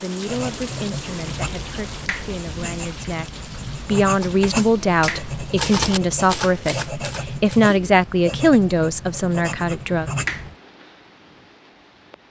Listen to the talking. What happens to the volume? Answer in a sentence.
The volume of the talking goes up.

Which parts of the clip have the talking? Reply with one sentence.
The talking can be heard from 0.0 to 10.1 s.